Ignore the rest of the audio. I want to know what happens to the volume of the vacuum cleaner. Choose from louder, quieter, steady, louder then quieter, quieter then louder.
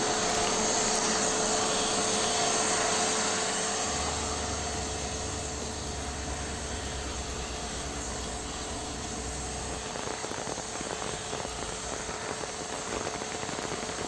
quieter.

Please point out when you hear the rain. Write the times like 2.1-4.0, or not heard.
0.0-14.0.